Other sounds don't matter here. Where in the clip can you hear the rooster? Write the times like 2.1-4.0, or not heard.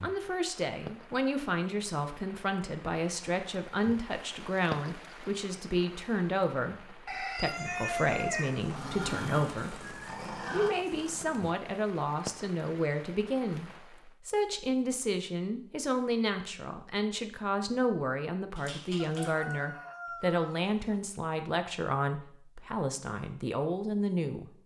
7.0-8.8, 18.9-21.0.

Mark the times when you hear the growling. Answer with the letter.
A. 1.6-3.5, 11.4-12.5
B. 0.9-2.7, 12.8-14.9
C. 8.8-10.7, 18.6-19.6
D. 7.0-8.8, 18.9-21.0
C.